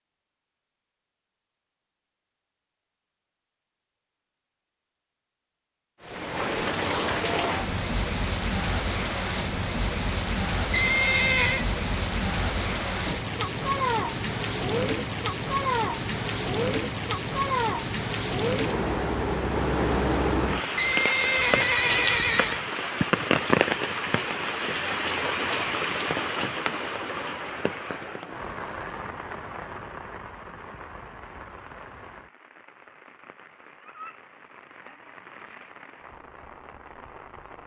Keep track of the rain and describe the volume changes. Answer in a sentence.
The loudness of the rain goes down.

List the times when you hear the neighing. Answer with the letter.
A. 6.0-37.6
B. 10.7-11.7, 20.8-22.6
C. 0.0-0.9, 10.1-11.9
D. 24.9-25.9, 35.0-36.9
B.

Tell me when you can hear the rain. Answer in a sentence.
The rain can be heard from 6.0 to 37.6 s.